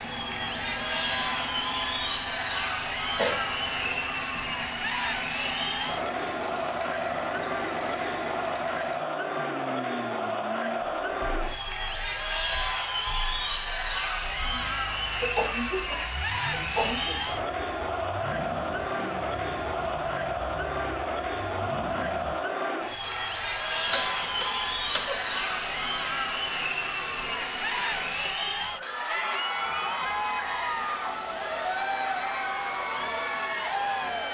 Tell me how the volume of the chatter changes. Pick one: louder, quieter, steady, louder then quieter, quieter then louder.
steady.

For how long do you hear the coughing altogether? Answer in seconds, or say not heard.
5 s.